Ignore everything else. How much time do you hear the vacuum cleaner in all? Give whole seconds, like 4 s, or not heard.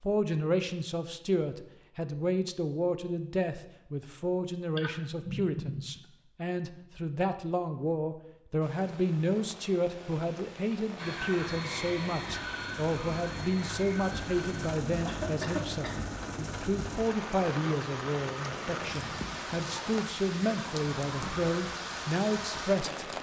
4 s.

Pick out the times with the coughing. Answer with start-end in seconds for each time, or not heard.
4.8-6.0, 14.8-16.1.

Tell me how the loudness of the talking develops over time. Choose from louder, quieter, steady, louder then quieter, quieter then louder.
steady.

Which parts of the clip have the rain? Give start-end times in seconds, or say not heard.
8.6-23.1.